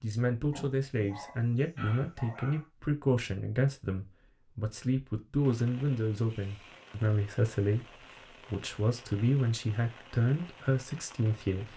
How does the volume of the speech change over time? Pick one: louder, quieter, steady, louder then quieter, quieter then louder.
steady.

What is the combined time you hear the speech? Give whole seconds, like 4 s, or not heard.
12 s.